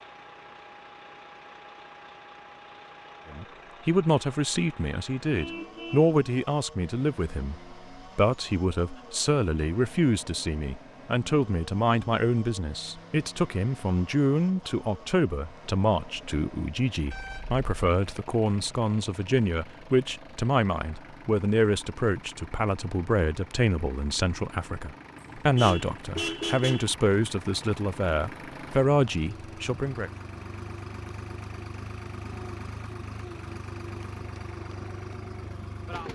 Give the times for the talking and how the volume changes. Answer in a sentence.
You can hear the talking from 3.3 to 30.1 s, at a steady volume.